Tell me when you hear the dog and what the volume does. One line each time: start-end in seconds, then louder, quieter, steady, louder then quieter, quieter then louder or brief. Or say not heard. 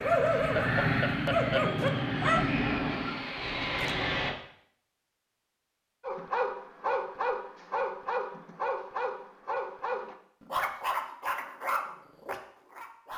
0.0-2.4 brief
6.0-13.1 steady.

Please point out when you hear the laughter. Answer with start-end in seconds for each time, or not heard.
0.3-1.7.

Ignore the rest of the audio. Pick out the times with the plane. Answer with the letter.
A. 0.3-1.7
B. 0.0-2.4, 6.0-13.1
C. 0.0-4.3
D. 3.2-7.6
C.